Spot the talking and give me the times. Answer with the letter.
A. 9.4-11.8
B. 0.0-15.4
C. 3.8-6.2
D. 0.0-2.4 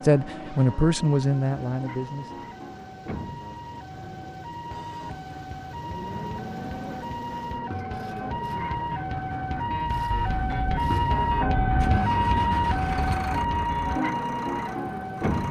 D.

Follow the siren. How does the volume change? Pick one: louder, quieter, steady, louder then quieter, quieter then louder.
louder.